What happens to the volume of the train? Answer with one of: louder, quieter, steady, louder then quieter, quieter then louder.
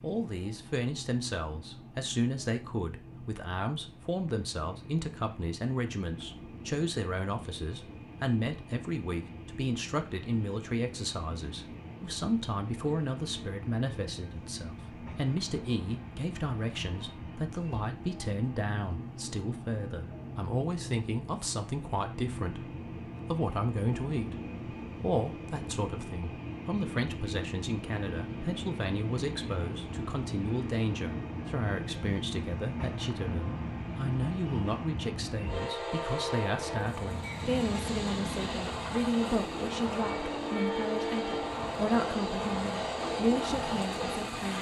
louder.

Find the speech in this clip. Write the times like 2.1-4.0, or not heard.
0.0-44.5.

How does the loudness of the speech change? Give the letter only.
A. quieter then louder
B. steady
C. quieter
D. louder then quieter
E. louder
B.